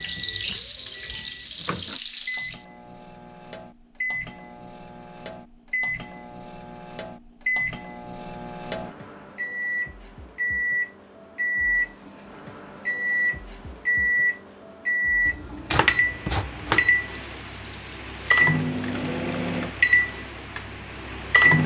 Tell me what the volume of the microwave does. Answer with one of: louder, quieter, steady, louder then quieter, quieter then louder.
louder.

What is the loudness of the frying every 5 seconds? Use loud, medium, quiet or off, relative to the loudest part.
loud, off, off, quiet, quiet.